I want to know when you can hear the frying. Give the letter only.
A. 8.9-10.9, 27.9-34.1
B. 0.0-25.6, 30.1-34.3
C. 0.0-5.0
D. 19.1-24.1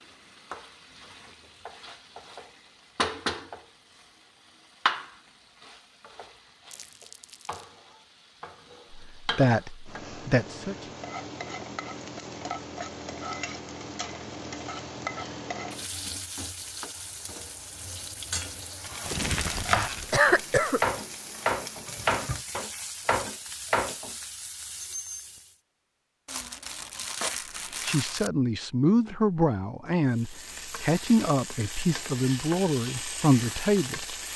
B.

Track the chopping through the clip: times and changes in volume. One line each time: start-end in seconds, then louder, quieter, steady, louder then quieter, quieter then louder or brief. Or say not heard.
19.1-24.1 steady.